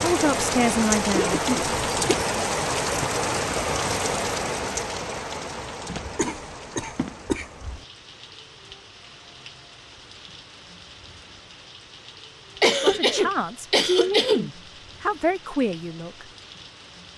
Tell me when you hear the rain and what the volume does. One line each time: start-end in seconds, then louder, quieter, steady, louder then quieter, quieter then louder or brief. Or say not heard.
0.0-17.1 quieter.